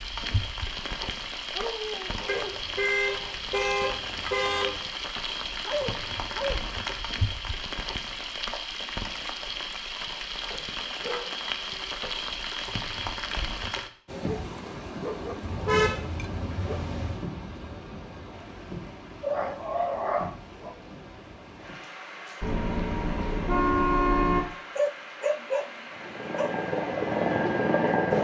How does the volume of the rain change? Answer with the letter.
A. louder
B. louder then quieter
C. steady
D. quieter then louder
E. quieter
E.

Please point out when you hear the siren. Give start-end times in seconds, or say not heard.
not heard.